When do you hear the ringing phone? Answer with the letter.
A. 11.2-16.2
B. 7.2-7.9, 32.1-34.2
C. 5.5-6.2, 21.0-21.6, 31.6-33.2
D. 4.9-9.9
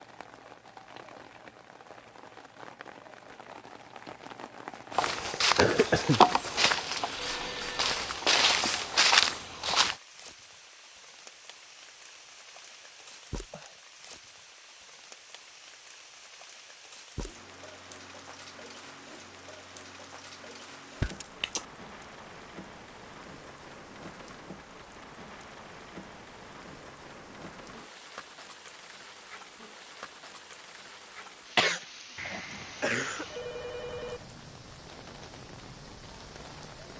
B.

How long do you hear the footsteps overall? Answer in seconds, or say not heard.
5 s.